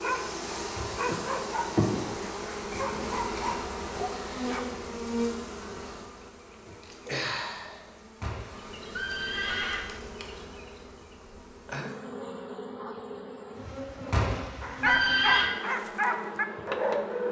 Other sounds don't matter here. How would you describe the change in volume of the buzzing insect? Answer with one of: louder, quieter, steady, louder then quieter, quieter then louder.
quieter.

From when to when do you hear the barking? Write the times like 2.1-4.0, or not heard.
0.0-4.7, 14.6-17.2.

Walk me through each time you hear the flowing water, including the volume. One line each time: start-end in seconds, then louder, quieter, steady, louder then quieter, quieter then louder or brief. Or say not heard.
not heard.